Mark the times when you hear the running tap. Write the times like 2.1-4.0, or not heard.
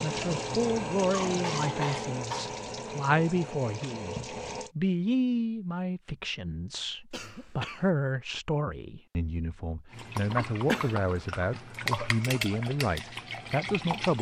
0.0-4.7, 9.9-14.1.